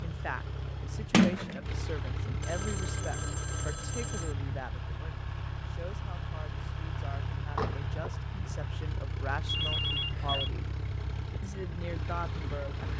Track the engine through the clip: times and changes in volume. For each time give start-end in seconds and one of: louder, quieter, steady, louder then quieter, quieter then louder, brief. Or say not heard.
0.0-12.9 steady.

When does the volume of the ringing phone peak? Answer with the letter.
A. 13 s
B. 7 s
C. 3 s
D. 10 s
D.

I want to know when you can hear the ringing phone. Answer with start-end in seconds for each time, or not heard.
2.4-4.3, 9.4-10.5.